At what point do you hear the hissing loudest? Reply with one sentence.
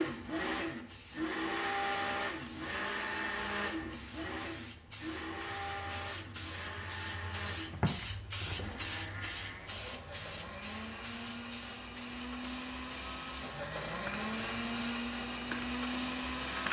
The volume of the hissing peaks at 8 seconds.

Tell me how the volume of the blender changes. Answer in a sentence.
The loudness of the blender goes down, then up.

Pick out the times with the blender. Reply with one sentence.
You can hear the blender from 0.0 to 16.6 s.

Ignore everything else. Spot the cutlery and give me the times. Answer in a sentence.
The cutlery can't be heard in this clip.